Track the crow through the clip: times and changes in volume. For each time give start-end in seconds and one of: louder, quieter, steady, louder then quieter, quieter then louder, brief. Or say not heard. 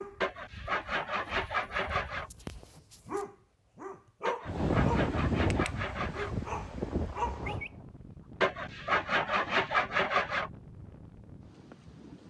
not heard.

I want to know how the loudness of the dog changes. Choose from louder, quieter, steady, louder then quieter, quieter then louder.
louder.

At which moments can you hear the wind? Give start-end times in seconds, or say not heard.
4.5-12.2.